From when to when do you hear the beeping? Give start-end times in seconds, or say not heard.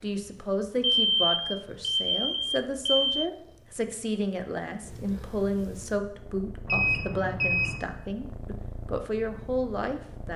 0.8-3.3, 6.7-7.8.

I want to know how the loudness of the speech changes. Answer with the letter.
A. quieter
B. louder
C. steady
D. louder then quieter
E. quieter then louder
C.